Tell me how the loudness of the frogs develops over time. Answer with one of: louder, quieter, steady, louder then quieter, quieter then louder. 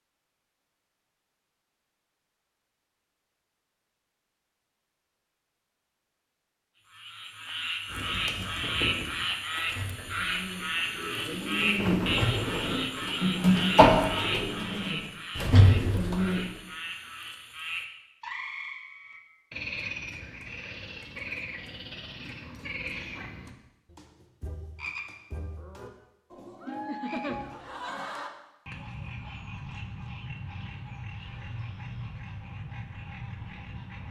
quieter.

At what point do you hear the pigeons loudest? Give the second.
14 s.